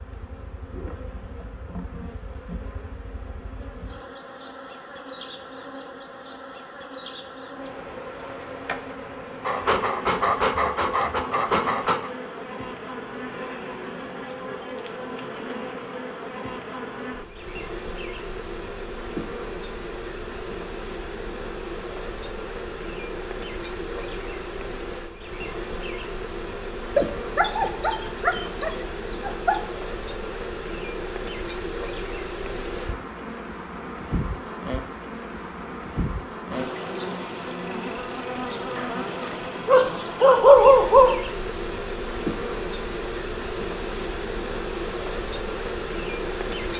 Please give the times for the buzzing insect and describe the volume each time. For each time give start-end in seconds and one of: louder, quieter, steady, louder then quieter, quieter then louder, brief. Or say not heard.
0.0-46.7 louder.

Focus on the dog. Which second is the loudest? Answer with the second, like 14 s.
41 s.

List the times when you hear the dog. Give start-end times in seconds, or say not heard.
9.4-12.1, 26.9-29.6, 38.8-41.2.